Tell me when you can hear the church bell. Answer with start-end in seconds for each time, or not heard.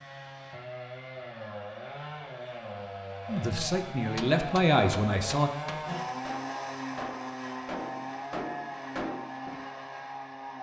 not heard.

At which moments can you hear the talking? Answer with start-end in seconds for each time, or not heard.
3.2-5.5.